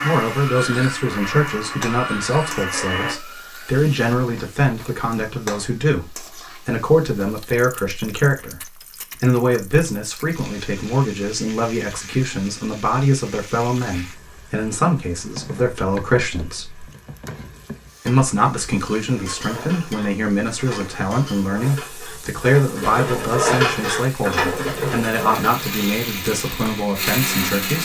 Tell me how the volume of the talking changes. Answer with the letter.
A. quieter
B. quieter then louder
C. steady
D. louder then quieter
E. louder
C.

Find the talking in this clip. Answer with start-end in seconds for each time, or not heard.
0.0-16.9, 18.1-27.7.